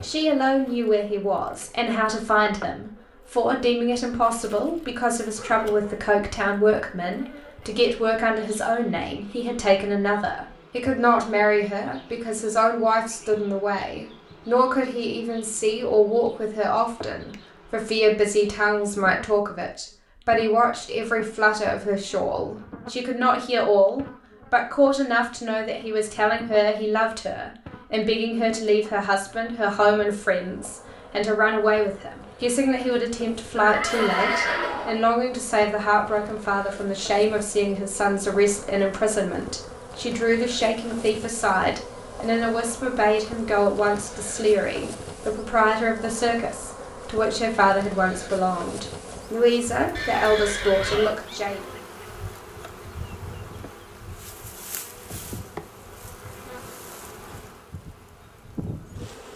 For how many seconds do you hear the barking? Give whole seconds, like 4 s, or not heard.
not heard.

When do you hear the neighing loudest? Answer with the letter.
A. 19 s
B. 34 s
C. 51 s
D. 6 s
B.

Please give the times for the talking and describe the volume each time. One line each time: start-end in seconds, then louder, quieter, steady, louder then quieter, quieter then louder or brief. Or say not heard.
0.0-51.6 steady.